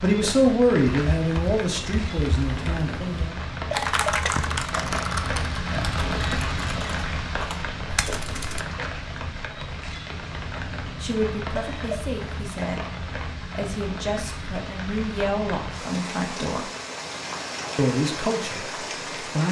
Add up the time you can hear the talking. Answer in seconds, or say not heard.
10 s.